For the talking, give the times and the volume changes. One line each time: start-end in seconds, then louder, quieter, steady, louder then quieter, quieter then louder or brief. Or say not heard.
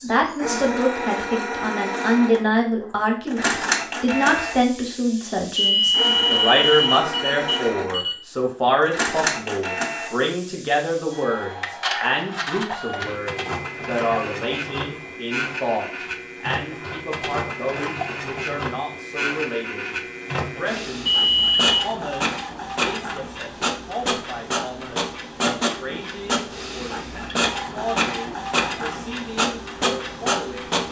0.0-30.8 quieter.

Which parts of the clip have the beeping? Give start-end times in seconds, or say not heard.
5.5-8.2, 21.1-21.8.